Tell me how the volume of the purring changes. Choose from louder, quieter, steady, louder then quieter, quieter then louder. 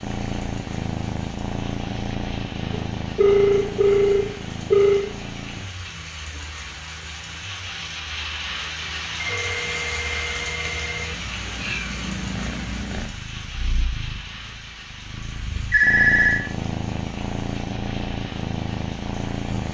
quieter then louder.